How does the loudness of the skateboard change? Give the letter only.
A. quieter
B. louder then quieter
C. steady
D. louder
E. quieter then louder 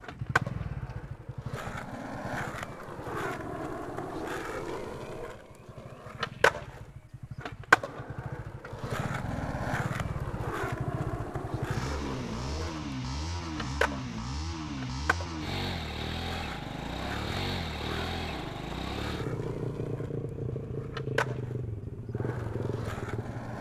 B.